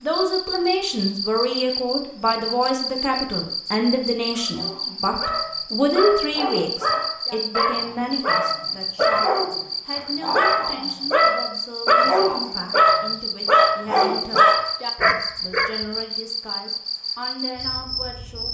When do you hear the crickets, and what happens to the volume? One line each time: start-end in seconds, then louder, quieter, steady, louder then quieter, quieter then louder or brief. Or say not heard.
0.0-18.5 steady.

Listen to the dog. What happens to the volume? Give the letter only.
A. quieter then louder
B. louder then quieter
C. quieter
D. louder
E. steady
D.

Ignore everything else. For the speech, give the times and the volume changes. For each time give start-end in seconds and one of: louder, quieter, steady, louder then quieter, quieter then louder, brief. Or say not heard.
0.0-18.5 quieter.